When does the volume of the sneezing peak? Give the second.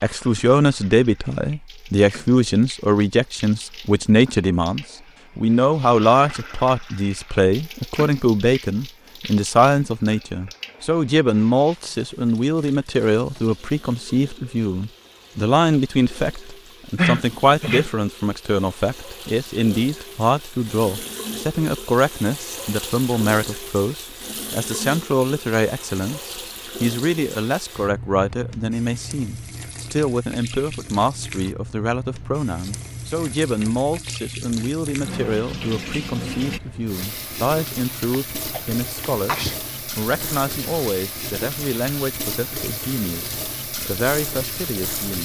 17 s.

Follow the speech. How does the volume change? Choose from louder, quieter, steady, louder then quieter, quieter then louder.
quieter.